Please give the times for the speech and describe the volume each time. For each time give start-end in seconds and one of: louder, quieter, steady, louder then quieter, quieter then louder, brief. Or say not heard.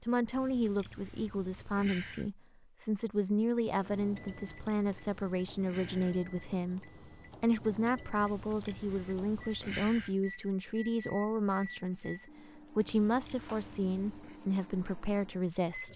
0.0-15.9 steady.